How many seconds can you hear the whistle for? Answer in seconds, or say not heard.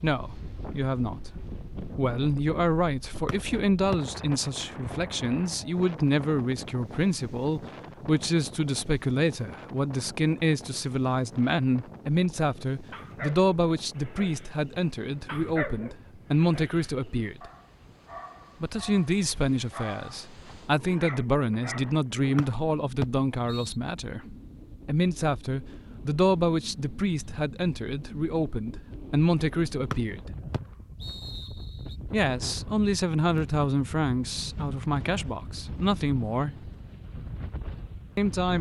4 s.